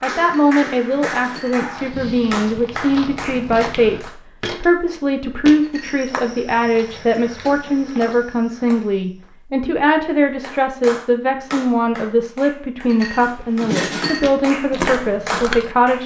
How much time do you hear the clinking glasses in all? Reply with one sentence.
You can hear the clinking glasses for 3 seconds altogether.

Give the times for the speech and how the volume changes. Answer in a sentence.
You can hear the speech from 0.0 to 16.0 s, at a steady volume.